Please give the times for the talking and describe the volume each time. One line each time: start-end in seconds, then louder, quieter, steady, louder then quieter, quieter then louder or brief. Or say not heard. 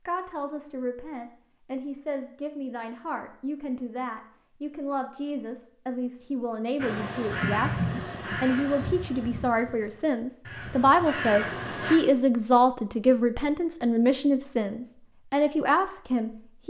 0.1-16.6 louder.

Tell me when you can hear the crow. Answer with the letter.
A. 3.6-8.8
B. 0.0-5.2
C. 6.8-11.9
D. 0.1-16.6
C.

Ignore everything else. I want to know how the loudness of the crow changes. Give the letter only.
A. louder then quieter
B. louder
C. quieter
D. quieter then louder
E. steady
D.